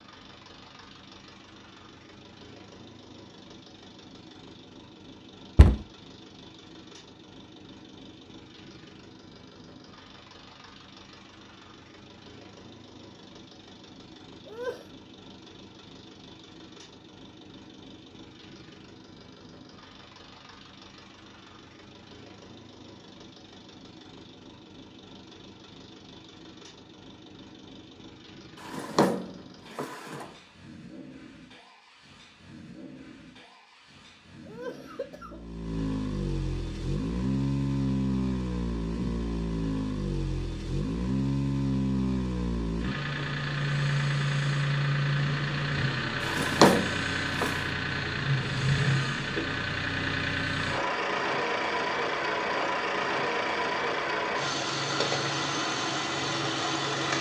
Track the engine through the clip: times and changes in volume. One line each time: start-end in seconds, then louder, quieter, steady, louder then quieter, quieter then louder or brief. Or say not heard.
0.0-57.1 louder.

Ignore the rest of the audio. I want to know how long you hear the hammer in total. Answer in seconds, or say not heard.
not heard.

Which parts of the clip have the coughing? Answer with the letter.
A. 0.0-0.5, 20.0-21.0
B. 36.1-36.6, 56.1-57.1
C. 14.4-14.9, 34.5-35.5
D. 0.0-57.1
C.